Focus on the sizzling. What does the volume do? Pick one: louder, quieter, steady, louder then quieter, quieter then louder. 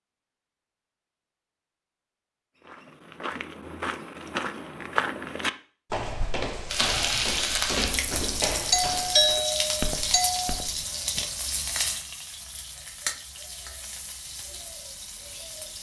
quieter.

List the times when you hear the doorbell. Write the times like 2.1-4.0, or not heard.
8.7-10.5.